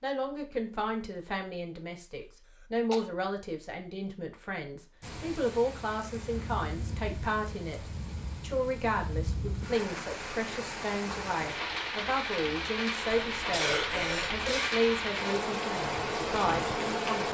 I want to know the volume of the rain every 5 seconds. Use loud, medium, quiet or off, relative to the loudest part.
off, medium, loud, loud.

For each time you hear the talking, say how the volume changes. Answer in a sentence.
You can hear the talking from 0.0 to 17.3 s, at a steady volume.